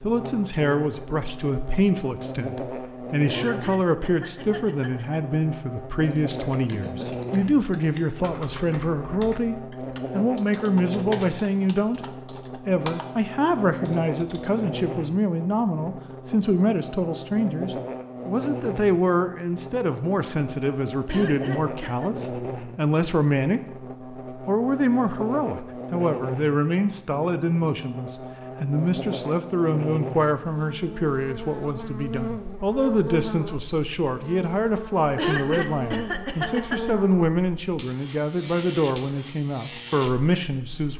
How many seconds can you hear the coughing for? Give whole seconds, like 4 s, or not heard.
5 s.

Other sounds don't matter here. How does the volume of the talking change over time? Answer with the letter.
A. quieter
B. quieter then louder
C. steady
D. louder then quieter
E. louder
C.